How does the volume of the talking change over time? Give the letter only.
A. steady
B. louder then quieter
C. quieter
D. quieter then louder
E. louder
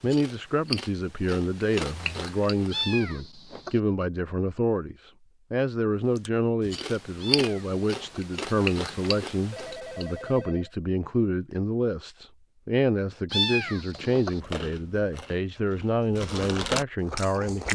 A.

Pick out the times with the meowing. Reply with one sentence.
You can hear the meowing from 2.7 to 3.8 s, from 7.2 to 8.2 s and from 13.3 to 14.4 s.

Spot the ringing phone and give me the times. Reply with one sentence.
The ringing phone can be heard from 9.5 to 10.7 s.